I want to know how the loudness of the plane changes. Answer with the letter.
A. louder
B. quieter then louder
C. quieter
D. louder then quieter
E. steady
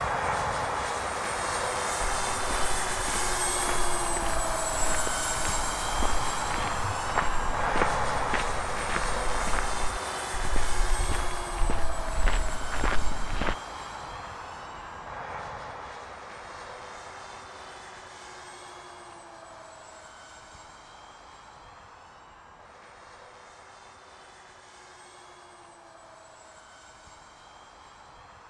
C.